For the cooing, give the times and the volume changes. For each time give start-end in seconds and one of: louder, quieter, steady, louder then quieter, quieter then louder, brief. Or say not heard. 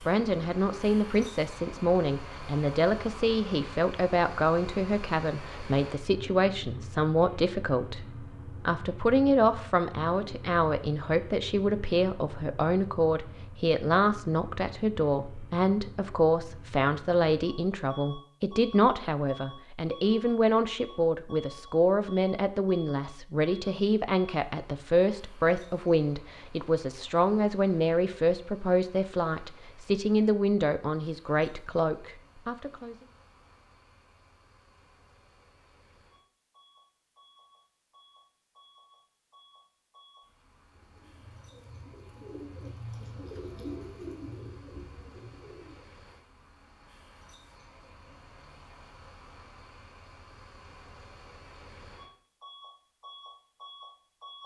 40.7-45.9 louder then quieter.